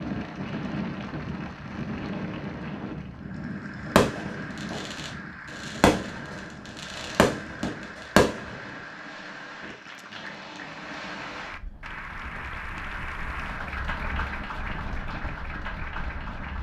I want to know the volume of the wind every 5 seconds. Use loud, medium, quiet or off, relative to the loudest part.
loud, medium, medium, medium.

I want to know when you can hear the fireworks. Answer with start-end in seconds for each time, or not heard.
3.9-8.6.